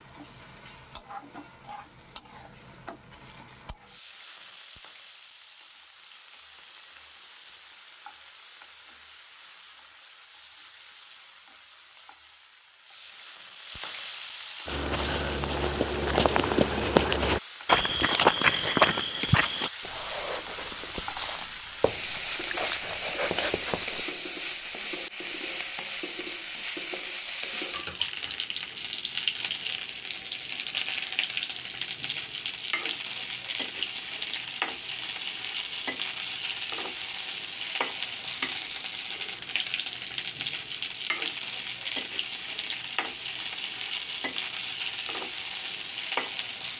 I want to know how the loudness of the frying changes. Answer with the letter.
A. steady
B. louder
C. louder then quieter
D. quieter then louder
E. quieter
B.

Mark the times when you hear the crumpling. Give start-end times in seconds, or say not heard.
21.1-23.0.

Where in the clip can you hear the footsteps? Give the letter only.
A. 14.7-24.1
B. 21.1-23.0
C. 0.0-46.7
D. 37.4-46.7
A.